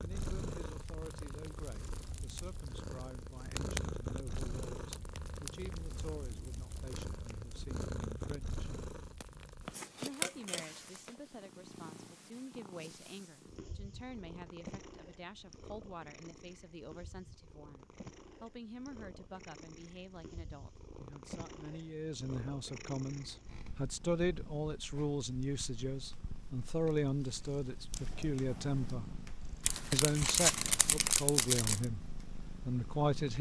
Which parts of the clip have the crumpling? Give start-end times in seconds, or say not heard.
9.8-11.1, 29.6-31.9.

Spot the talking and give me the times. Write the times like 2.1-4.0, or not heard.
0.0-8.7, 9.9-29.1, 29.9-33.3.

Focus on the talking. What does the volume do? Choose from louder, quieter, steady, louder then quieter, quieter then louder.
louder.